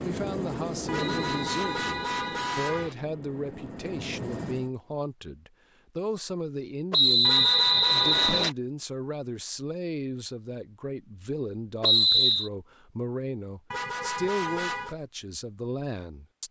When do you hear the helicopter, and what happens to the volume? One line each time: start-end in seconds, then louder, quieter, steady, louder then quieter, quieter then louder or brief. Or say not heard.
0.0-4.7 quieter then louder.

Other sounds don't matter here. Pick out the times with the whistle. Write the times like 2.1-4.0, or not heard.
1.0-3.0, 6.9-8.5, 11.8-12.5.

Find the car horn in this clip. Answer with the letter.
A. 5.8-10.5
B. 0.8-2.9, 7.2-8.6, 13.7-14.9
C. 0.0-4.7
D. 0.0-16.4
B.